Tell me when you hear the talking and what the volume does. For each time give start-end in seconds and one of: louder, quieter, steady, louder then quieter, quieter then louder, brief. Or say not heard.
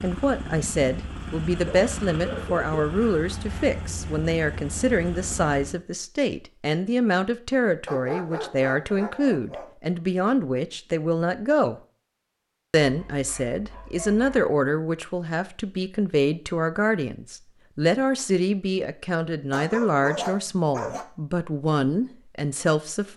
0.0-11.8 steady
12.7-23.1 steady.